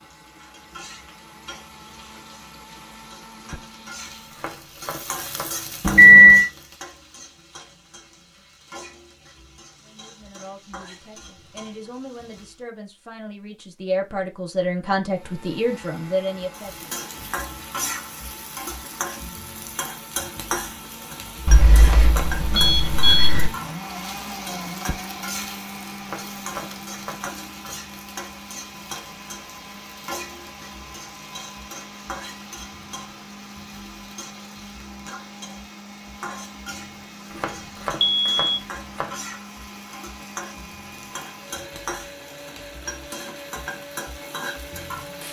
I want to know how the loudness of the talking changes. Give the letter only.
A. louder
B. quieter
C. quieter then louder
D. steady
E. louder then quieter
A.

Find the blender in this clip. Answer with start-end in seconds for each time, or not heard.
0.0-4.6, 15.0-45.2.